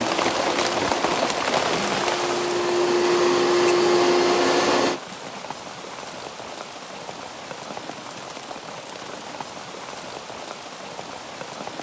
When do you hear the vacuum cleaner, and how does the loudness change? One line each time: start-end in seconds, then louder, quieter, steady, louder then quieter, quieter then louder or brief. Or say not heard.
0.0-5.0 louder.